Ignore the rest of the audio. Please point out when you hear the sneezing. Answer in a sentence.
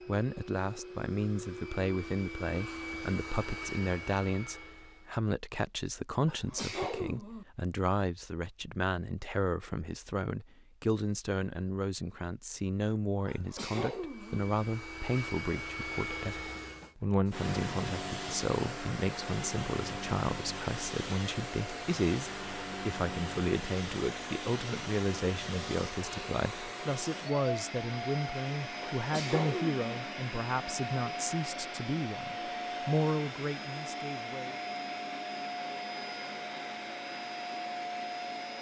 You can hear the sneezing from 6.2 to 7.5 s, from 13.2 to 14.4 s and from 28.9 to 30.0 s.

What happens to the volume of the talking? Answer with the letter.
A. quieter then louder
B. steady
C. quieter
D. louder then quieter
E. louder
B.